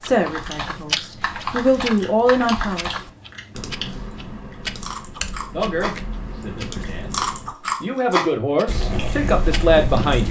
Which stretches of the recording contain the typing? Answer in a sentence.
You can hear the typing from 0.0 to 7.5 s.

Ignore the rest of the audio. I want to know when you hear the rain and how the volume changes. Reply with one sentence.
You can't hear the rain here.